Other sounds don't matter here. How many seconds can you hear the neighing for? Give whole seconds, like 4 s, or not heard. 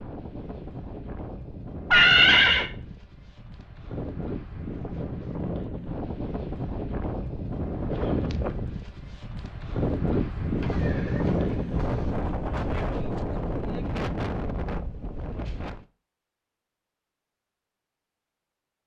2 s.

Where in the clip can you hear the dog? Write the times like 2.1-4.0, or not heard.
not heard.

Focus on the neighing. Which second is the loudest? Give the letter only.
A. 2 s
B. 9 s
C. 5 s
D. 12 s
A.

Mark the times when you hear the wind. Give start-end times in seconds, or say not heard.
0.0-15.8.